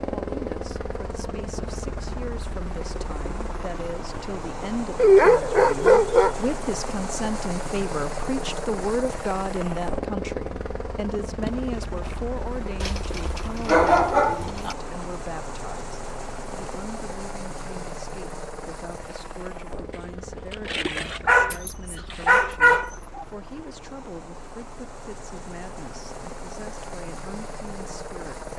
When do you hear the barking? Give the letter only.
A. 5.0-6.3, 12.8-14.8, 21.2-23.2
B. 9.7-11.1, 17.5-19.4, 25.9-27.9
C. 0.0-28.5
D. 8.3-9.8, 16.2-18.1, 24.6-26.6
A.